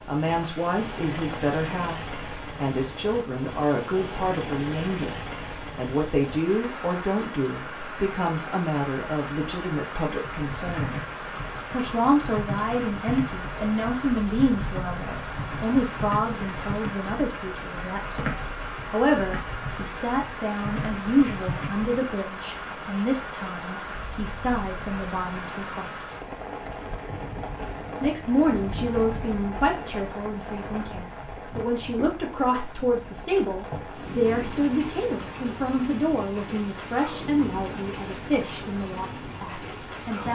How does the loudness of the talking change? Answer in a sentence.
The loudness of the talking stays about the same.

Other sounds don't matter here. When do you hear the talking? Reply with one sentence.
You can hear the talking from 0.1 to 11.0 s, from 11.7 to 25.9 s and from 28.0 to 40.3 s.